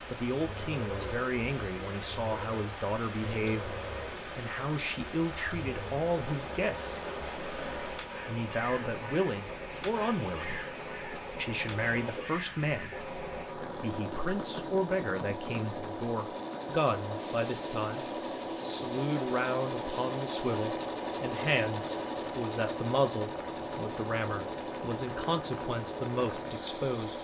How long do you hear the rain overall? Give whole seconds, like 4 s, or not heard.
27 s.